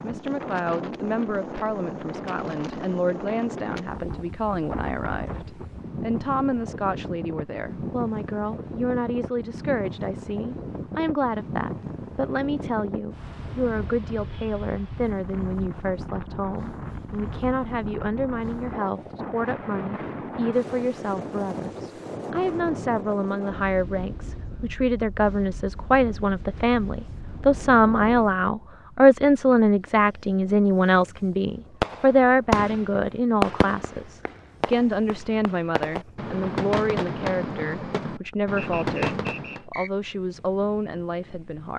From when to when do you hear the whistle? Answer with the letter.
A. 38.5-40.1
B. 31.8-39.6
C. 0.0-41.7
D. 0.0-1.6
A.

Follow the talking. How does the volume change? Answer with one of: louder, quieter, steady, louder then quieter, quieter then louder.
louder then quieter.